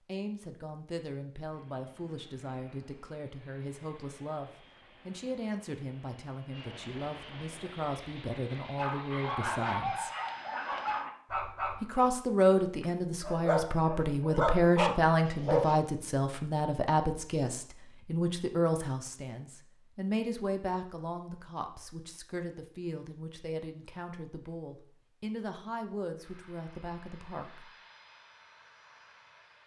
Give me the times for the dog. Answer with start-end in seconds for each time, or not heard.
8.8-15.8.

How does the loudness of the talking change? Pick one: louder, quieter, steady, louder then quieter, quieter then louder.
louder then quieter.